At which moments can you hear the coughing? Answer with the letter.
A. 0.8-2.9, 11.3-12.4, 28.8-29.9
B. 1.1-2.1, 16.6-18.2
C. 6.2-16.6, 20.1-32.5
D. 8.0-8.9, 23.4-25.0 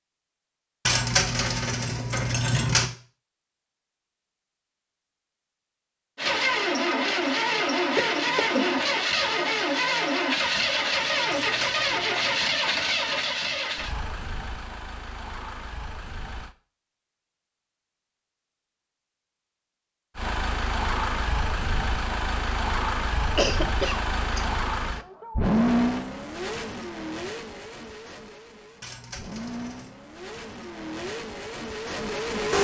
D.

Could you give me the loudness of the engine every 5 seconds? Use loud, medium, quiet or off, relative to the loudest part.
off, loud, loud, quiet, medium, medium, medium.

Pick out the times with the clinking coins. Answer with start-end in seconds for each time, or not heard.
0.8-2.9, 11.3-12.4, 28.8-29.9.